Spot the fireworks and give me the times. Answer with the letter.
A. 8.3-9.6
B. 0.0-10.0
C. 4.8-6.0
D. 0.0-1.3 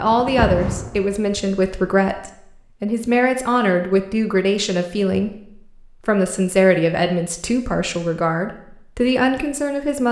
D.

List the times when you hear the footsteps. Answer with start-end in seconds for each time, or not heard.
not heard.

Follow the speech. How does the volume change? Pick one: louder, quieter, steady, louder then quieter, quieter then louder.
steady.